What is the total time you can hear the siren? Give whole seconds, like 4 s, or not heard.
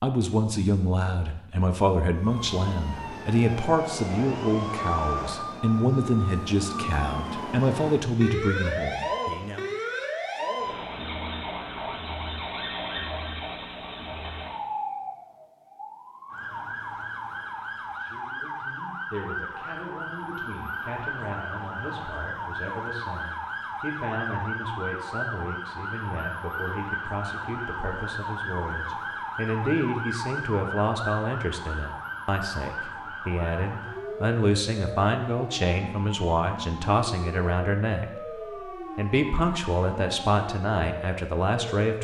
40 s.